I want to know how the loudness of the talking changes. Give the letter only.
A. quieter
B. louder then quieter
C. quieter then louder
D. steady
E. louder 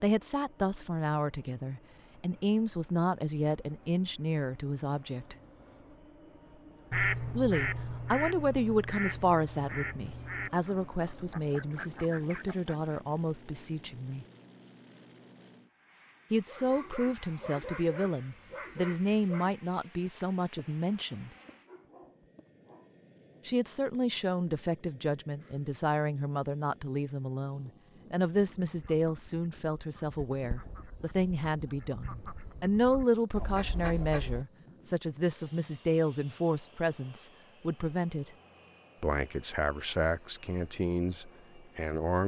D.